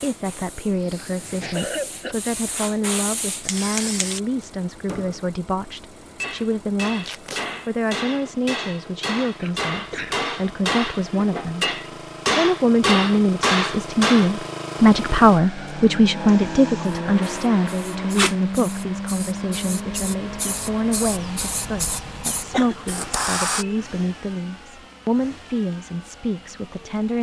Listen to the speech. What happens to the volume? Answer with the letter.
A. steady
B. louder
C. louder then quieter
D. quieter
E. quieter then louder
C.